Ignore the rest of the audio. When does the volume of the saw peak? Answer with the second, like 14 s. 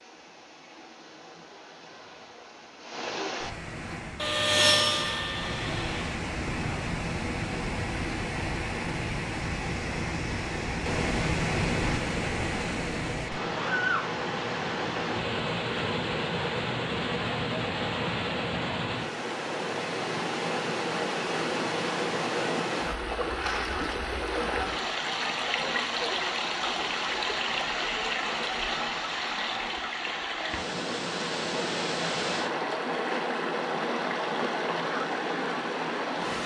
5 s.